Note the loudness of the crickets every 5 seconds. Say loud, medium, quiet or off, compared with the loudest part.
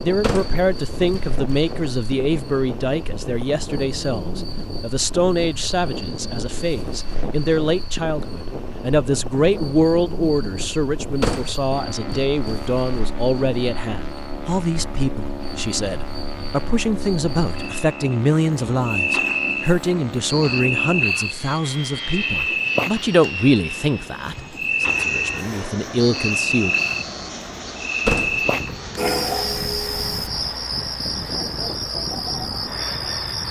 quiet, quiet, quiet, medium, loud, loud, loud.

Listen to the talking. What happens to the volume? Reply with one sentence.
The loudness of the talking stays about the same.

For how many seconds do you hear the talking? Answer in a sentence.
The talking can be heard for 27 seconds in total.